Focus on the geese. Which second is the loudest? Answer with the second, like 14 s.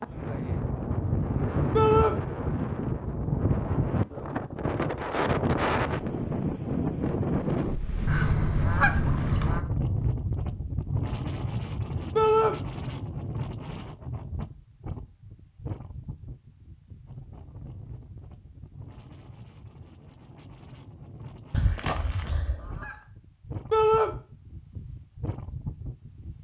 9 s.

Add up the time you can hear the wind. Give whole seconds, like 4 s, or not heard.
26 s.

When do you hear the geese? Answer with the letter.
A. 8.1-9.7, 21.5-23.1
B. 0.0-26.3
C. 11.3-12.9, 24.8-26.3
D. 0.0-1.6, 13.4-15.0
A.